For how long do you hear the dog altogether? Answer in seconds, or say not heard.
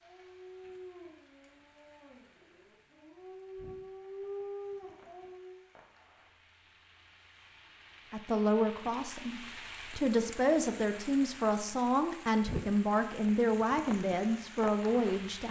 6 s.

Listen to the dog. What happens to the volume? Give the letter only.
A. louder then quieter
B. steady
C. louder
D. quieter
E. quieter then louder
E.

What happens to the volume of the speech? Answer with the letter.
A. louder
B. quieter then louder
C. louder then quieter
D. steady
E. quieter
D.